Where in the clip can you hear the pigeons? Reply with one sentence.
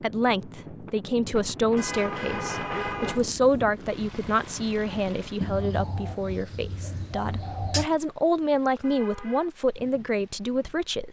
You can hear the pigeons from 5.4 to 7.9 s.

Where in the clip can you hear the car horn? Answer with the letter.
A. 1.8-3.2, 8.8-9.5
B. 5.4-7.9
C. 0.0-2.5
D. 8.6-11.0
A.